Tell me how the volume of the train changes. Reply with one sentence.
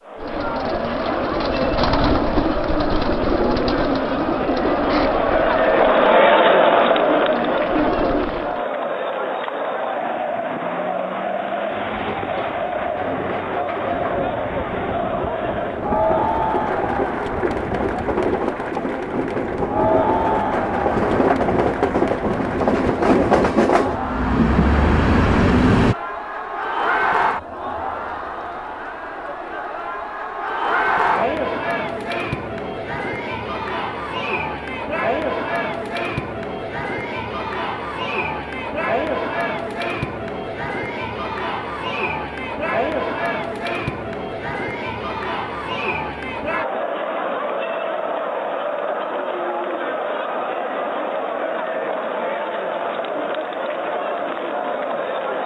The loudness of the train goes up.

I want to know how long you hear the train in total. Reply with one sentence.
The train can be heard for 14 seconds in total.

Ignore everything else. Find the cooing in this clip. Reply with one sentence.
You can hear the cooing from 0.1 to 8.6 s.